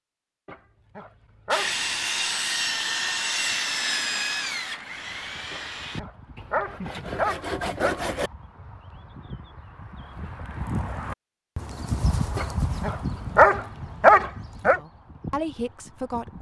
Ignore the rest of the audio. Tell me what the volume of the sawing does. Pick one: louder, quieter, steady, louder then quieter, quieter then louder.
quieter then louder.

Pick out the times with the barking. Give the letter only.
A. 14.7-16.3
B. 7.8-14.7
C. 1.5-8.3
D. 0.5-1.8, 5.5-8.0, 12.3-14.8
D.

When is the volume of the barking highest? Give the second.
14 s.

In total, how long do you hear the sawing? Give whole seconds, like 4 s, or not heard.
7 s.